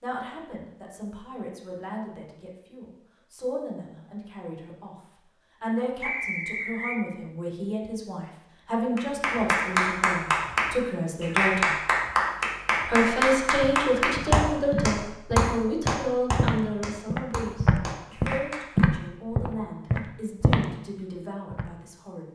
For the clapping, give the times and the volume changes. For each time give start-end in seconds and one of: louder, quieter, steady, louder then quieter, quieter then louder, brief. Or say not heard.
8.9-18.9 quieter.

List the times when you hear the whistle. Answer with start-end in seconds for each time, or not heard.
6.0-7.0.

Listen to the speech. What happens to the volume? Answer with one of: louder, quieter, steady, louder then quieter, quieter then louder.
louder then quieter.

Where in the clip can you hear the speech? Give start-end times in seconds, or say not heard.
0.0-5.0, 5.6-11.8, 12.8-22.3.